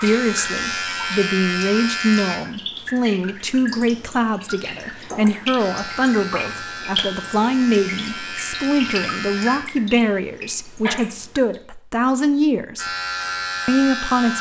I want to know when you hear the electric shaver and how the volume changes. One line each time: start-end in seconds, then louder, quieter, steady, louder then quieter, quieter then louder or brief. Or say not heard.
0.0-2.4 brief
5.5-9.6 steady
12.8-14.3 brief.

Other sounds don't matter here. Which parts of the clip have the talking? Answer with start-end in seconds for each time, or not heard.
0.0-12.9, 13.7-14.3.